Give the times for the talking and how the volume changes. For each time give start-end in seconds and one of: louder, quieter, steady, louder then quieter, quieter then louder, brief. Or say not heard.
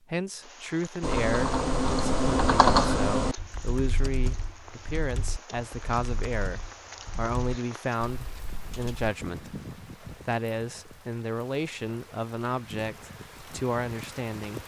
0.1-14.6 steady.